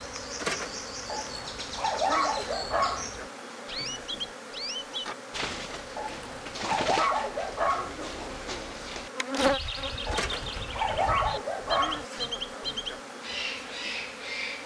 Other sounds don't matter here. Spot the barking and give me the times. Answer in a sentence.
The barking can be heard from 1.1 to 3.1 s, from 6.0 to 8.0 s and from 10.1 to 12.1 s.